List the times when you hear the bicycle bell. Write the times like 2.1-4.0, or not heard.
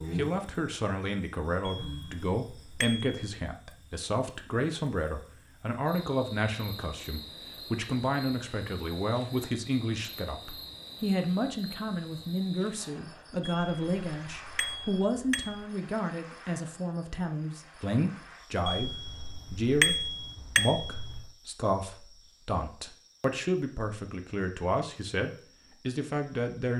1.7-3.1, 13.4-15.7, 18.6-21.3.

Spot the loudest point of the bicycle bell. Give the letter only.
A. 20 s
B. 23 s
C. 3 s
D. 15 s
A.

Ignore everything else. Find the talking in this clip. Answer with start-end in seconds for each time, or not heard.
0.1-26.7.